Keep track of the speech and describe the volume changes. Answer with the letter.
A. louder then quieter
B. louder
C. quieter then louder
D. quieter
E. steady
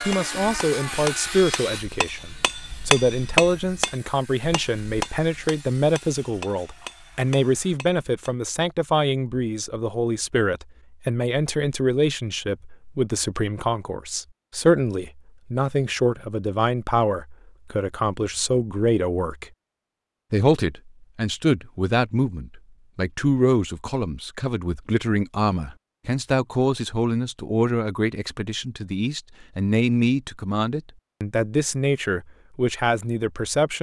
E.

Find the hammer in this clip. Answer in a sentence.
The hammer can be heard from 0.0 to 8.3 s.